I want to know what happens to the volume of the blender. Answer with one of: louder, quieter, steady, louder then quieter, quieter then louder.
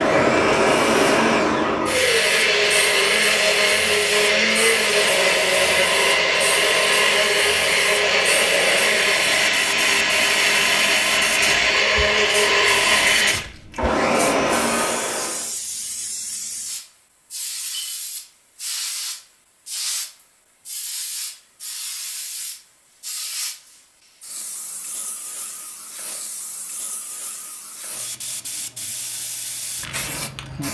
steady.